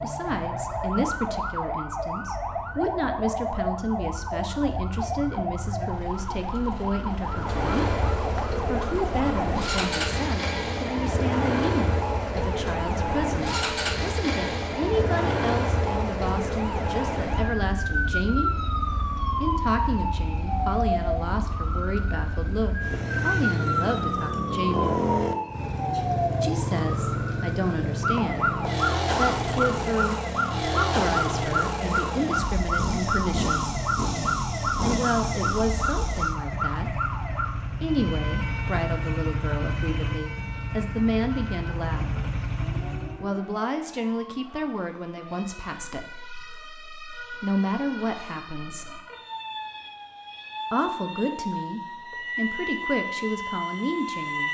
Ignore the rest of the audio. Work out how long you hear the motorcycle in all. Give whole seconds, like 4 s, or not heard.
36 s.